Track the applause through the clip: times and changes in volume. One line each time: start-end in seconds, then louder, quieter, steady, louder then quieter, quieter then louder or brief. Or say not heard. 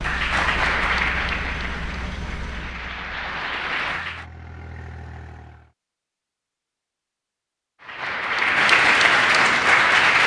0.0-4.2 quieter then louder
7.8-10.2 brief.